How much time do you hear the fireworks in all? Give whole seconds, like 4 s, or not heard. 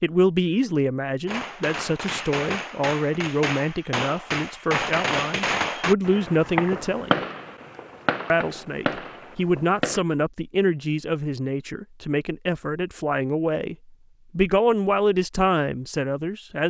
9 s.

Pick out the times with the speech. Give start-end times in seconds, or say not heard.
0.0-7.2, 8.3-13.8, 14.3-16.6.